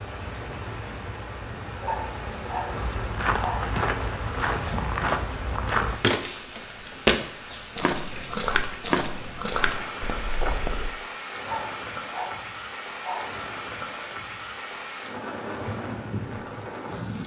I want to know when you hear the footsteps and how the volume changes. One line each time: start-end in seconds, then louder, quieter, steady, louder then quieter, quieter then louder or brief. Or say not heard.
2.7-10.9 louder then quieter.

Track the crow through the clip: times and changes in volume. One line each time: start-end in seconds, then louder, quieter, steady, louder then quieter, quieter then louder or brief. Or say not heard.
not heard.